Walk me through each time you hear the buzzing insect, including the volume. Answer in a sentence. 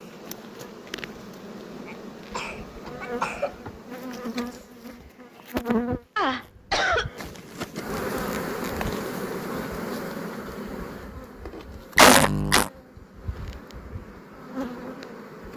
The buzzing insect can be heard from 0.0 to 15.5 s, getting louder then quieter.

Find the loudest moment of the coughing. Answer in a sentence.
The volume of the coughing peaks at 12 seconds.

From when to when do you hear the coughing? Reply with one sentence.
The coughing can be heard from 1.9 to 3.5 s, from 6.2 to 7.1 s and from 11.9 to 12.7 s.